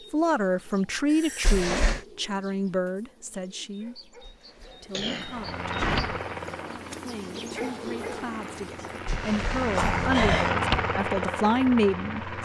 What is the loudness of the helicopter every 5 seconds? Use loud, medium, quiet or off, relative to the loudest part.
off, medium, loud.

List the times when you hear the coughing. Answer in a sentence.
You can hear the coughing from 1.1 to 1.6 s, from 4.9 to 5.5 s and from 9.1 to 10.1 s.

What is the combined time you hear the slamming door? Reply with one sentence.
You can hear the slamming door for 4 seconds altogether.